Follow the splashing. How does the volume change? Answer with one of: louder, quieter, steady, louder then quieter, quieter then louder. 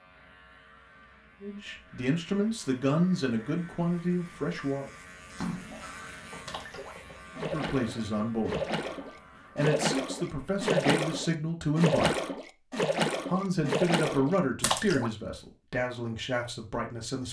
louder.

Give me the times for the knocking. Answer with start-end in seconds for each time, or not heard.
6.3-7.2.